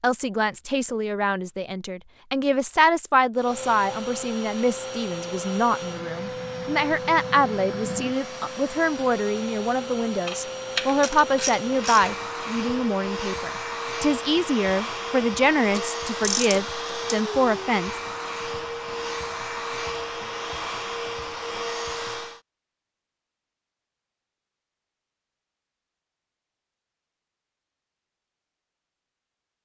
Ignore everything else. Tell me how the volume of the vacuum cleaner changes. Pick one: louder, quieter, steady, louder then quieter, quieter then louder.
steady.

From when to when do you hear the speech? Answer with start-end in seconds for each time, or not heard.
0.0-18.0.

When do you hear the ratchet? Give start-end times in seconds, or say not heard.
10.2-12.2, 15.7-17.2.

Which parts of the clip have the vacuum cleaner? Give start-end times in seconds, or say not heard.
3.4-22.4.